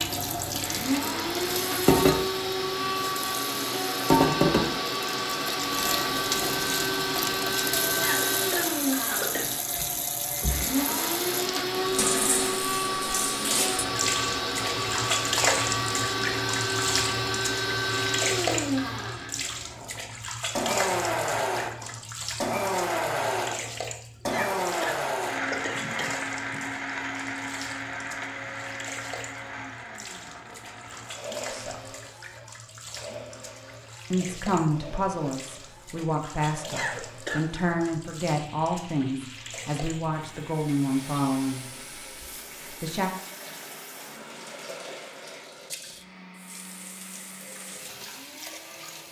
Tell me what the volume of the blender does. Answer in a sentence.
The volume of the blender goes down.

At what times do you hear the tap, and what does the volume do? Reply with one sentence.
The tap can be heard from 0.0 to 49.0 s, getting quieter.